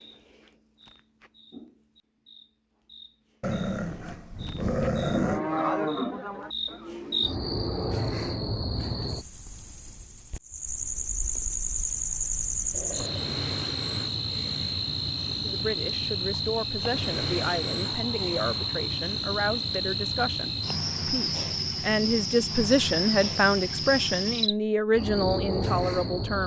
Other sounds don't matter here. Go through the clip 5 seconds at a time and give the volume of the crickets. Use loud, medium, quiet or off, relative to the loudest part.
quiet, loud, loud, loud, loud, loud.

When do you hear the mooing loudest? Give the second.
6 s.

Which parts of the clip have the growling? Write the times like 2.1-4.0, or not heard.
3.4-5.4, 12.7-13.3, 17.7-18.9.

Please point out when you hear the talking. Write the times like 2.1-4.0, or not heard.
15.4-26.4.